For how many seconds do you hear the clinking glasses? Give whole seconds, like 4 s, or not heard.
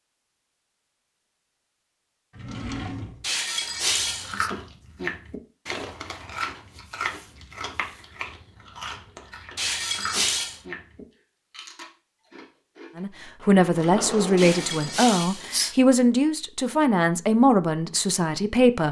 4 s.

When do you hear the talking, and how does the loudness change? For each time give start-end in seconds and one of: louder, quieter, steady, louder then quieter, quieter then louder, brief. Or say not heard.
12.9-18.8 steady.